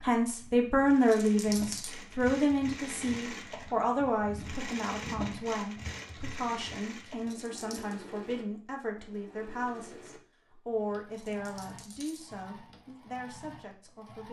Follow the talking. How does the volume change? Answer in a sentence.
The loudness of the talking goes down.